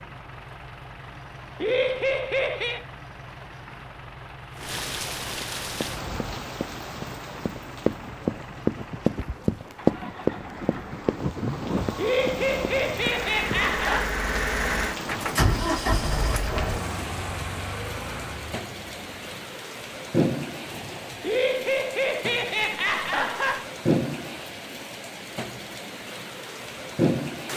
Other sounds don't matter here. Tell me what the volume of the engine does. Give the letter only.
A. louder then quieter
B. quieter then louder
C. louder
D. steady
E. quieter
C.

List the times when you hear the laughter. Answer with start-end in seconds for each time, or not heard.
1.6-2.9, 11.9-14.1, 21.2-23.7.